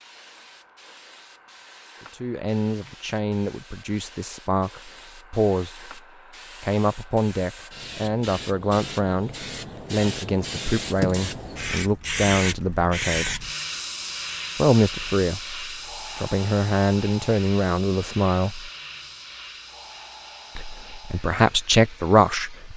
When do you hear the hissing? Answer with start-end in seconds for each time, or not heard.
0.0-22.7.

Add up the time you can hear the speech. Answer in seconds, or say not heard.
17 s.